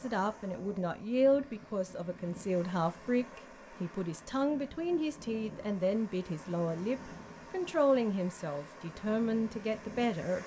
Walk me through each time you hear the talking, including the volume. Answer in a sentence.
You can hear the talking from 0.0 to 10.4 s, at a steady volume.